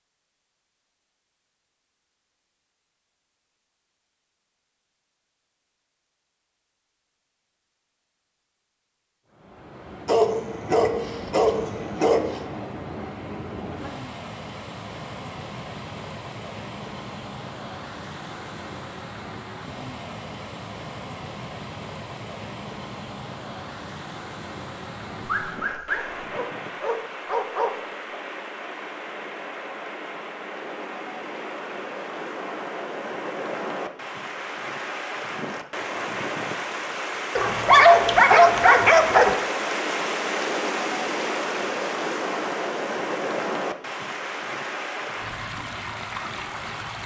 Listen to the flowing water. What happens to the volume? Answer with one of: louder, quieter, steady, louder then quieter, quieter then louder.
louder.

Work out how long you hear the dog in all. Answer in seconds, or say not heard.
7 s.